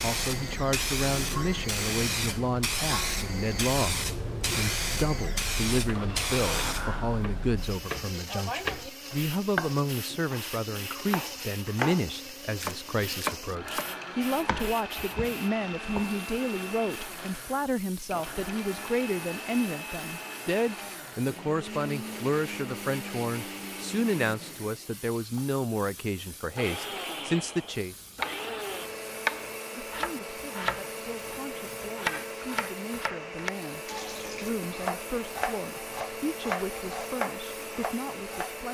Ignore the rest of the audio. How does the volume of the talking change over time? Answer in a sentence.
The loudness of the talking goes down.